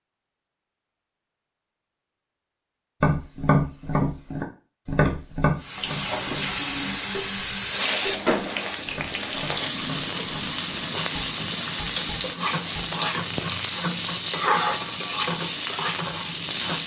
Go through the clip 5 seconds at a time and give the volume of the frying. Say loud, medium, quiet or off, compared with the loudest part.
off, loud, loud, loud.